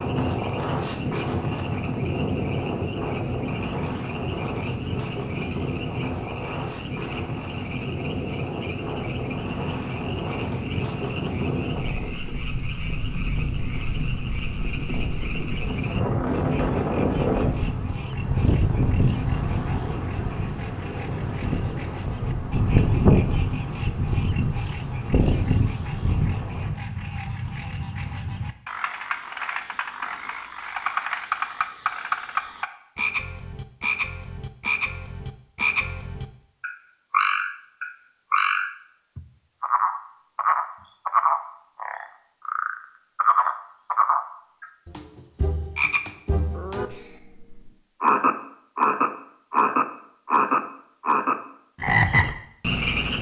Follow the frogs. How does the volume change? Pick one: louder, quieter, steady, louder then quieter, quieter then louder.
louder.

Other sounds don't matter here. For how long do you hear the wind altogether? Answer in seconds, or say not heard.
27 s.